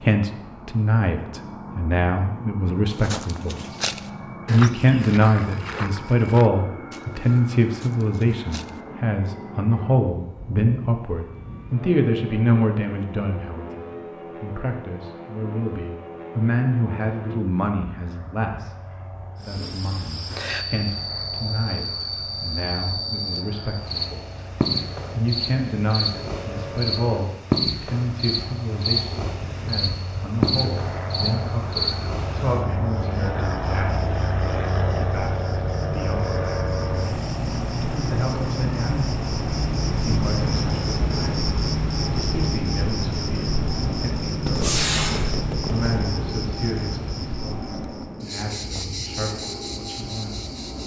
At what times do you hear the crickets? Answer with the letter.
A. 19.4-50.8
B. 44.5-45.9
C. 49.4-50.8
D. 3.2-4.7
A.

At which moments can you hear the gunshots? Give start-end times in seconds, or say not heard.
44.5-45.9.